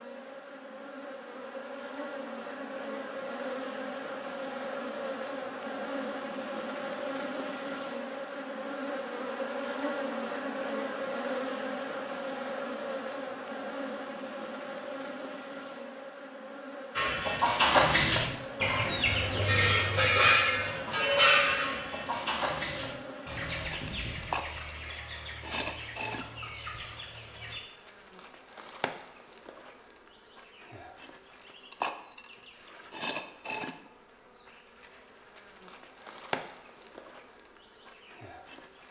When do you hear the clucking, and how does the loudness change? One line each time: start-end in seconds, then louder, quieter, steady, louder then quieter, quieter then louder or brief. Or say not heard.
16.9-27.6 quieter.